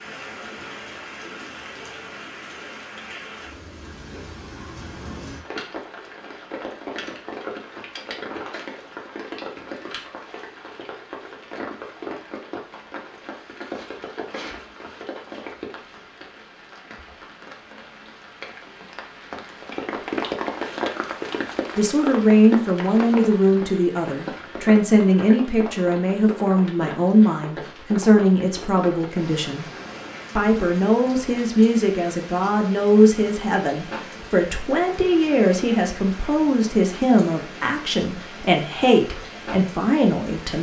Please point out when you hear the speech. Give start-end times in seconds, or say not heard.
21.8-29.6, 30.4-40.5.